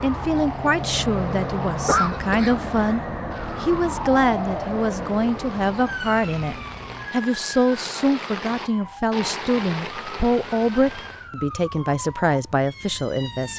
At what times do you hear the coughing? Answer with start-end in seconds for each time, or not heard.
1.9-3.0.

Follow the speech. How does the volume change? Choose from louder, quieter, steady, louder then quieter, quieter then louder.
steady.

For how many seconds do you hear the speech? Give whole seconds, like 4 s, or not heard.
13 s.